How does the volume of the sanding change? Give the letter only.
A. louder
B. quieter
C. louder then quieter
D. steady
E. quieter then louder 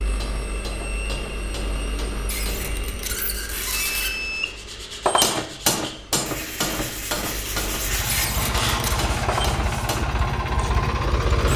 A.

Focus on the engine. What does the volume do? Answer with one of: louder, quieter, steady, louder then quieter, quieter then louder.
quieter then louder.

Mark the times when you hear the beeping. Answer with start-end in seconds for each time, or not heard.
3.7-4.6.